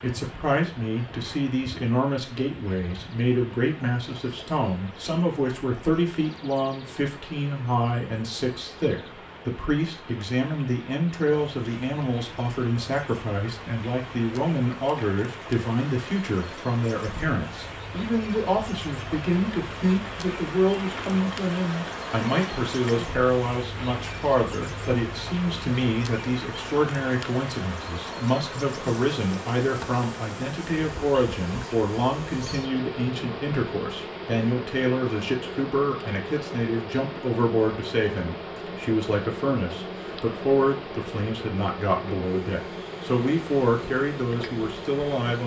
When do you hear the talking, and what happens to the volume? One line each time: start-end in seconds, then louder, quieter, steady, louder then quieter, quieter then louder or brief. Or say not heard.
0.0-45.4 steady.